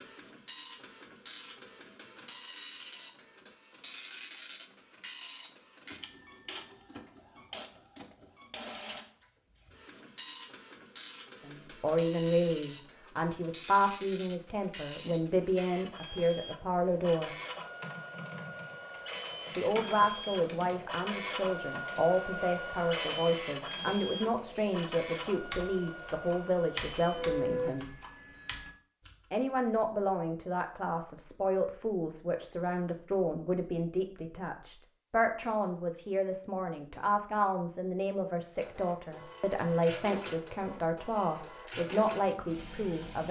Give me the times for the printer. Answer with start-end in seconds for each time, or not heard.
0.0-28.8, 38.5-43.2.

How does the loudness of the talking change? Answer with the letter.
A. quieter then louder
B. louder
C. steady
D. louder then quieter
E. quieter
C.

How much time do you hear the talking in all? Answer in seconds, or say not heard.
28 s.